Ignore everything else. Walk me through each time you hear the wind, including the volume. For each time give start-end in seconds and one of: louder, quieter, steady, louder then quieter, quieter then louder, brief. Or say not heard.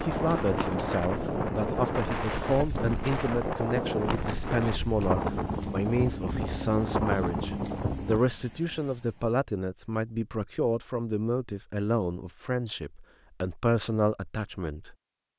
0.0-8.2 steady.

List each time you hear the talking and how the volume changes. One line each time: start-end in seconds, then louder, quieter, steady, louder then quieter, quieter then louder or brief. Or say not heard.
0.0-14.9 steady.